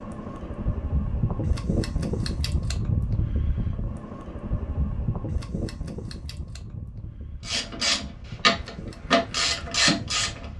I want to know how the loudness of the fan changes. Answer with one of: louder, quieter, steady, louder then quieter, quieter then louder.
quieter.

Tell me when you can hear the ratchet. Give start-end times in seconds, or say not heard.
7.4-10.5.